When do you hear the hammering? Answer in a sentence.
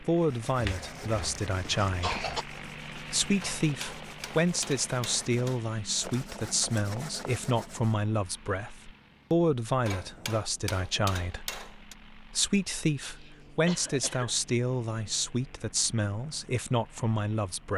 You can hear the hammering from 3.4 to 5.6 s and from 9.8 to 11.9 s.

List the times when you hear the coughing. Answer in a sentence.
The coughing can be heard from 0.6 to 2.5 s and from 13.2 to 14.3 s.